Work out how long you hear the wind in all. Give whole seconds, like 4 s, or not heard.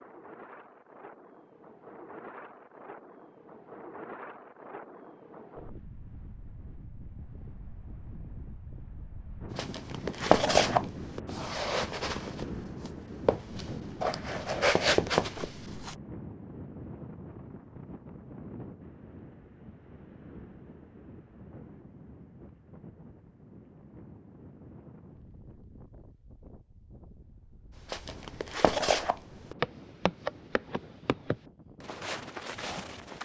33 s.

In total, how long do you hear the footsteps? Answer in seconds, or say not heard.
12 s.